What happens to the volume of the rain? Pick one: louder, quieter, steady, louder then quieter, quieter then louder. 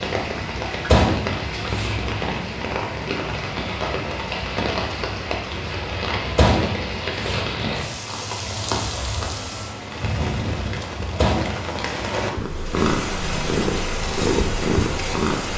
steady.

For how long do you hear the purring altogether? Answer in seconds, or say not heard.
3 s.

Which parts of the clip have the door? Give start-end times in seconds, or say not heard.
0.9-1.9, 6.3-7.4, 11.2-11.6.